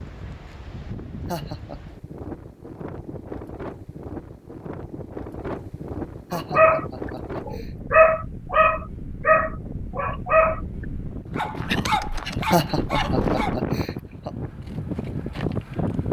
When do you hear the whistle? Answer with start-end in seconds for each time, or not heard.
not heard.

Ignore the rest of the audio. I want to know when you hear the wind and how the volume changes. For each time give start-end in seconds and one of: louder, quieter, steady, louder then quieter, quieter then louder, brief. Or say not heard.
0.0-16.0 louder.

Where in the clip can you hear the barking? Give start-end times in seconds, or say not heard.
6.3-6.8, 7.5-10.6, 11.3-13.6.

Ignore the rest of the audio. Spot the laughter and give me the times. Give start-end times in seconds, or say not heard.
1.2-1.8, 6.3-7.7, 12.5-14.3.